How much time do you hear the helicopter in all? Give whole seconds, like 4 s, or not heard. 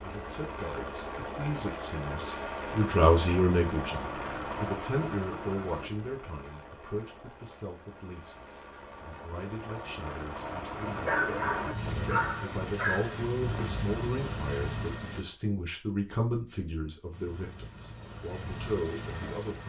18 s.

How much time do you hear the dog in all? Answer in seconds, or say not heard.
2 s.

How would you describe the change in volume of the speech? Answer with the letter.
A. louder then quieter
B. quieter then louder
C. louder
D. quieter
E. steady
B.